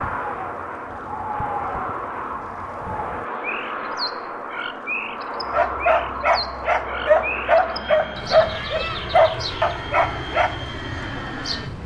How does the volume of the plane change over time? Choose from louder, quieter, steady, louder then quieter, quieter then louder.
steady.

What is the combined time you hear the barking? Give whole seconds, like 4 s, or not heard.
5 s.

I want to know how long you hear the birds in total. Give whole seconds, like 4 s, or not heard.
12 s.